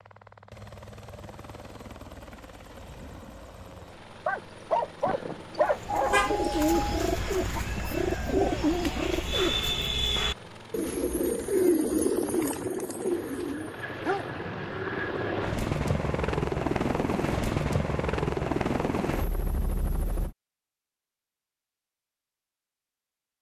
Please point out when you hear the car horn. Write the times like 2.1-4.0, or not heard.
5.9-7.0.